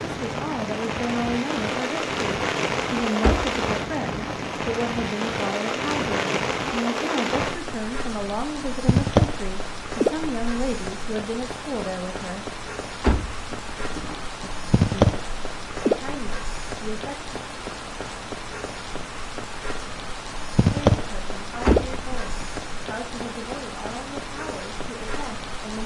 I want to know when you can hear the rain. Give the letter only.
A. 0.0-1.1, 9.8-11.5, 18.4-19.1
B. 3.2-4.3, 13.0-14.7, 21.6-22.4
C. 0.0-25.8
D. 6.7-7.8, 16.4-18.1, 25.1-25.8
C.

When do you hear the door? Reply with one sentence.
The door can be heard from 3.2 to 4.3 s, from 13.0 to 14.7 s and from 21.6 to 22.4 s.